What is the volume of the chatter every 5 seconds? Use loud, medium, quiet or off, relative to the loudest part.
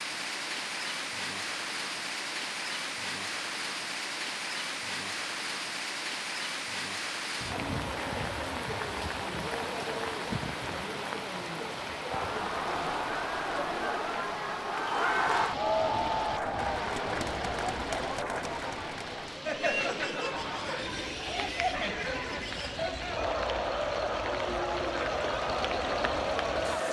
off, off, loud, loud, loud, loud.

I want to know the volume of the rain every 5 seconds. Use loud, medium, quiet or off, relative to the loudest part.
loud, loud, loud, medium, medium, medium.